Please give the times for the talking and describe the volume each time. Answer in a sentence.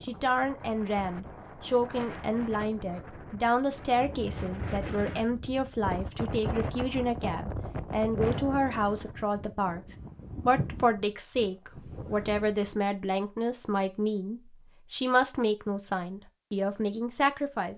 The talking can be heard from 0.0 to 17.7 s, at a steady volume.